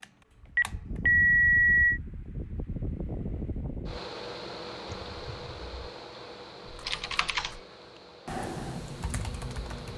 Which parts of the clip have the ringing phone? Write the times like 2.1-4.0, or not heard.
0.6-2.0, 6.7-7.7.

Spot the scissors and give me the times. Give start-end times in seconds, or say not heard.
not heard.